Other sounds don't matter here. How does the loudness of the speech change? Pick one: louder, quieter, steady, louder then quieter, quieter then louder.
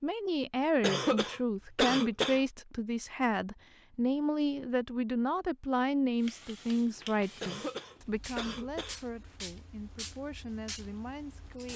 quieter.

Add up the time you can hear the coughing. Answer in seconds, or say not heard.
3 s.